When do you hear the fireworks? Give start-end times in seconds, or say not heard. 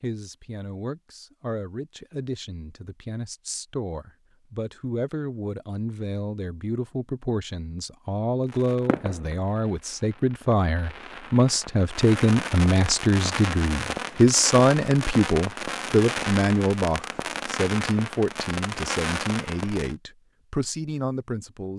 8.4-19.9.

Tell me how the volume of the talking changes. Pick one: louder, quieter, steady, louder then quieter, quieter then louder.
louder then quieter.